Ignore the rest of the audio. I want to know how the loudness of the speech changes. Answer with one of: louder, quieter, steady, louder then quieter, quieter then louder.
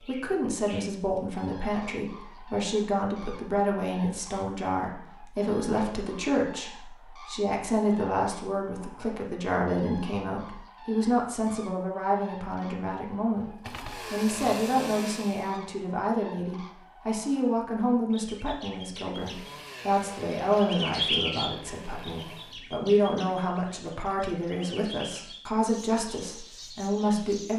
steady.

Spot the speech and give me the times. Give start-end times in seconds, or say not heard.
0.1-27.5.